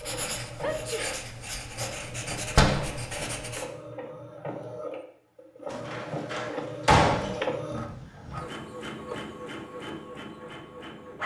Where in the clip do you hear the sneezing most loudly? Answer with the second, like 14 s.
1 s.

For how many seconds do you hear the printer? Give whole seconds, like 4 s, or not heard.
11 s.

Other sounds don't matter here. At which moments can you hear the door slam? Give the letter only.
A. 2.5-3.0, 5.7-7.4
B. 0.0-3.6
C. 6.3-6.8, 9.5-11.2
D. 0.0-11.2
A.